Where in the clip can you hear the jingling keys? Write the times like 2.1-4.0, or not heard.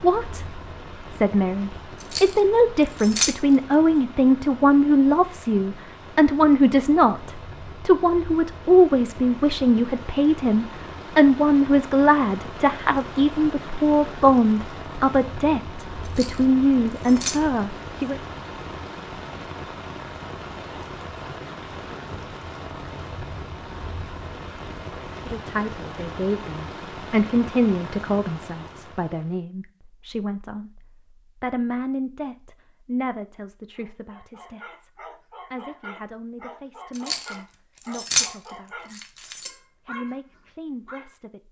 2.0-3.4, 16.1-17.4, 37.0-38.3, 38.9-39.5.